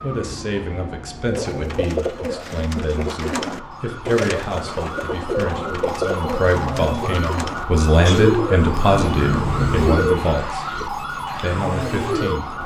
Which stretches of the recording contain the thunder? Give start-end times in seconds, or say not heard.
8.8-10.1.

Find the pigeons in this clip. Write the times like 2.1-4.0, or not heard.
1.3-12.4.